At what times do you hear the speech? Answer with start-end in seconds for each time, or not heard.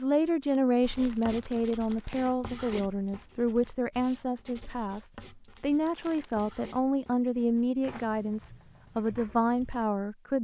0.0-10.3.